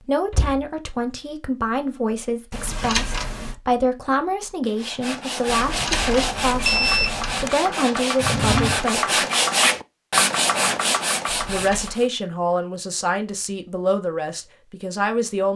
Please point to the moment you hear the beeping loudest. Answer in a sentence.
The loudest moment of the beeping is at 7 seconds.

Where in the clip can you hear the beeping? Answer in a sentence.
The beeping can be heard from 2.5 to 3.5 s, from 5.5 to 7.5 s and from 11.2 to 12.0 s.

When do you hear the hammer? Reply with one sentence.
You can't hear the hammer here.